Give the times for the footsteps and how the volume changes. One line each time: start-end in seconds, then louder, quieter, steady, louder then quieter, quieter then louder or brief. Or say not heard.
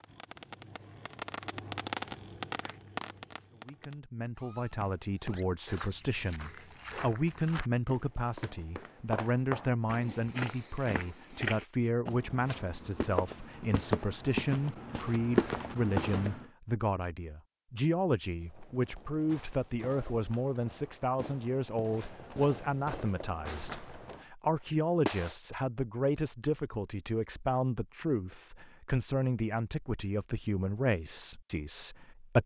4.7-16.4 louder.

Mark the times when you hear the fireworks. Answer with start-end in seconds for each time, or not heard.
0.0-5.7, 18.4-25.4.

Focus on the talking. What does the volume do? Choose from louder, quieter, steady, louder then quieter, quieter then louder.
steady.